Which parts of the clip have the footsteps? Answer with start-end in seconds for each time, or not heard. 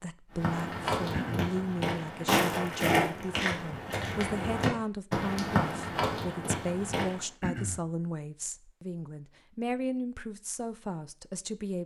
0.3-7.2.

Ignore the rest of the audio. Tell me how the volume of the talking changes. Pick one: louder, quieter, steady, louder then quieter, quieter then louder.
steady.